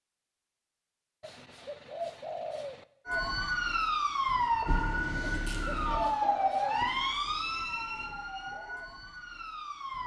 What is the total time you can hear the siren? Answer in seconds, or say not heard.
7 s.